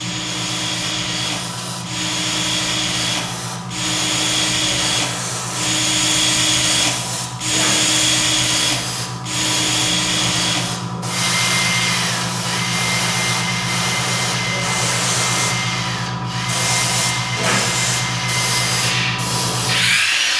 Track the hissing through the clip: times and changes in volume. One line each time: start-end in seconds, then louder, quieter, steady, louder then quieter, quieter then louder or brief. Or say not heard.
0.0-20.3 louder.